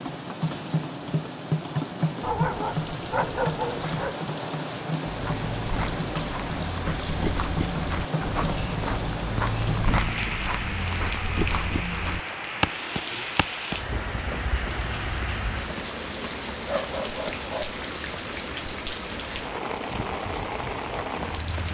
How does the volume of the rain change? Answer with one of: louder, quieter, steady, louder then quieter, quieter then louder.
steady.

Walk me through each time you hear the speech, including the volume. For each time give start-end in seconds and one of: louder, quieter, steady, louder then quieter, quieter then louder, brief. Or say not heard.
not heard.